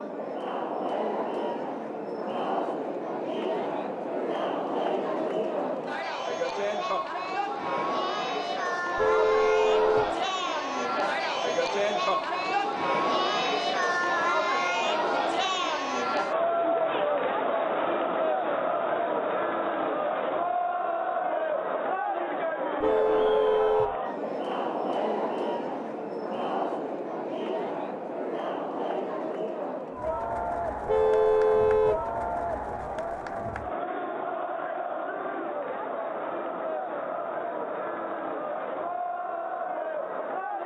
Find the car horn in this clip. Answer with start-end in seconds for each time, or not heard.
8.9-10.1, 22.8-23.9, 30.9-32.0.